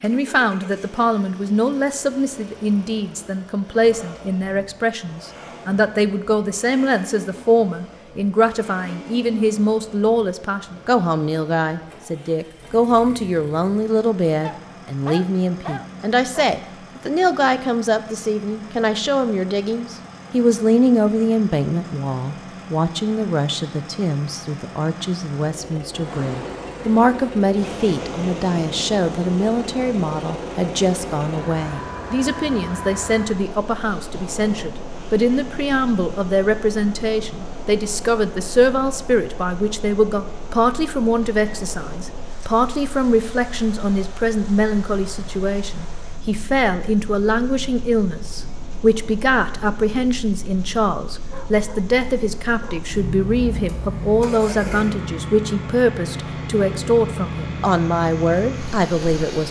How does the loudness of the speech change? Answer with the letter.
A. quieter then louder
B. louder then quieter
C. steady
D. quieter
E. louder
C.